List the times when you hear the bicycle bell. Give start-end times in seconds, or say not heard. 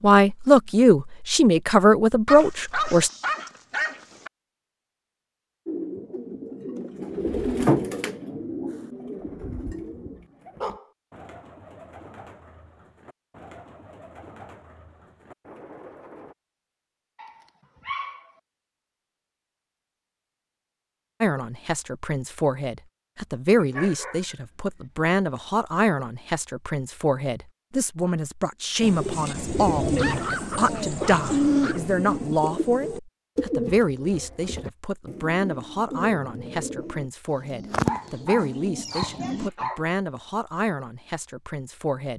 not heard.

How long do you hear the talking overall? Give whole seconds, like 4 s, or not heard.
24 s.